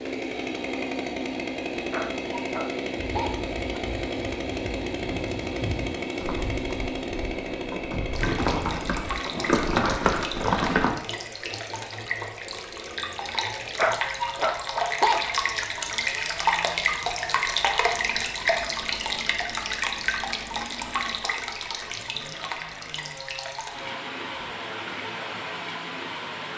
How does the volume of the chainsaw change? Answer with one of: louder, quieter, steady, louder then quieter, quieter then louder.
quieter.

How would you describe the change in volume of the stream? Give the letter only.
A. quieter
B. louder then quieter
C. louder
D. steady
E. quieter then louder
B.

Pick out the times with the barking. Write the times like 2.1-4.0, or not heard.
1.9-3.8, 13.8-15.7.